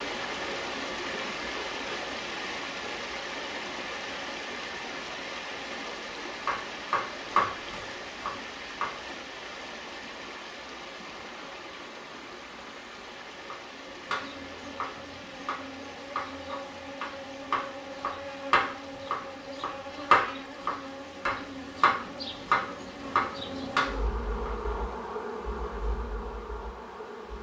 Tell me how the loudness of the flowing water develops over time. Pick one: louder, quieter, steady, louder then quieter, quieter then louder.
quieter.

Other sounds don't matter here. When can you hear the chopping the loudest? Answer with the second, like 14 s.
20 s.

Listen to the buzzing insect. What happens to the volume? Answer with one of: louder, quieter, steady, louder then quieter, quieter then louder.
louder.